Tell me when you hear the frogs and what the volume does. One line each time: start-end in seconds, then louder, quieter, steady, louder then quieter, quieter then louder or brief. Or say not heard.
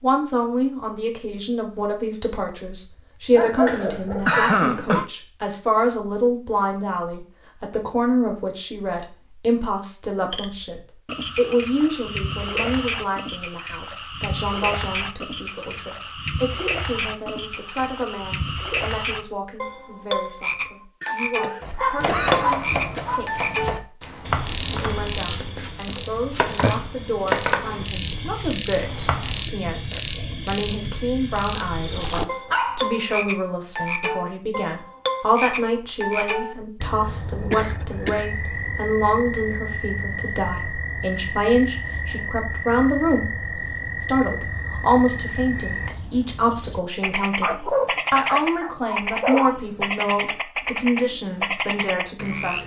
10.3-52.6 steady.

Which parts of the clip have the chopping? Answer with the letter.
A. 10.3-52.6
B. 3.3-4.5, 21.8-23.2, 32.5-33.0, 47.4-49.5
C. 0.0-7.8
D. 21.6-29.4
D.